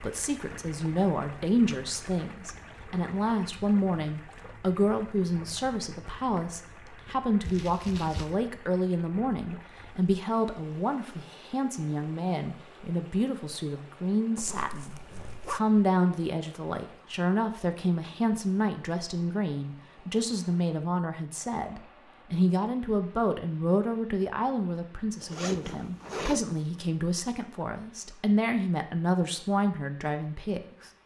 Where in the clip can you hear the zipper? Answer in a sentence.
The zipper can be heard from 7.4 to 8.3 s, from 14.3 to 15.6 s and from 25.2 to 26.6 s.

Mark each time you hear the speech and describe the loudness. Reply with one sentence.
The speech can be heard from 0.0 to 30.9 s, at a steady volume.